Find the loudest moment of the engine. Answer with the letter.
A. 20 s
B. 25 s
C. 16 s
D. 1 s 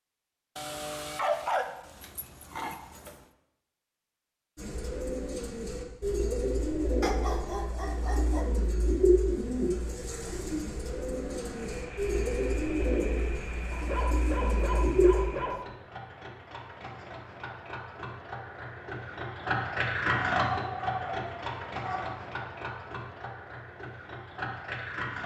A.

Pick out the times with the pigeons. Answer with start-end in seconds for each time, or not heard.
4.5-15.2.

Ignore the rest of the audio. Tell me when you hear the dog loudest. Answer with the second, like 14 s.
1 s.